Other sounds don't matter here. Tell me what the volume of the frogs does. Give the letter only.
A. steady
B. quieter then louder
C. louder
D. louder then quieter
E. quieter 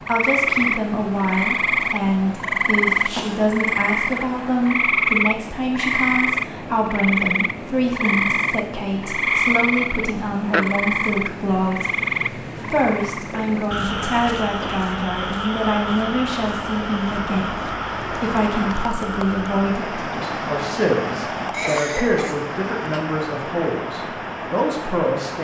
E.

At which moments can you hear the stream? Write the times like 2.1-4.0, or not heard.
0.0-25.3.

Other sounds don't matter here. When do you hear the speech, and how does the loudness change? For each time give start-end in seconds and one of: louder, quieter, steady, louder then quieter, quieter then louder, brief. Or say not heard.
0.0-25.3 steady.